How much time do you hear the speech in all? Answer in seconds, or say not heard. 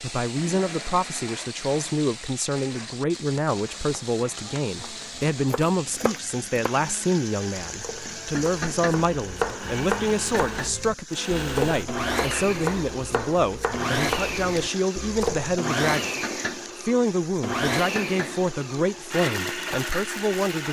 20 s.